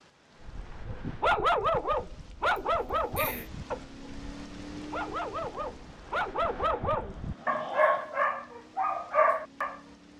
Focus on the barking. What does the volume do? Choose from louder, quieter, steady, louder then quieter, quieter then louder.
quieter then louder.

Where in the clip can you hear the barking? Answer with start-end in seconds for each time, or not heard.
0.4-9.8.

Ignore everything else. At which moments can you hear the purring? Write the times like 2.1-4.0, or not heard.
not heard.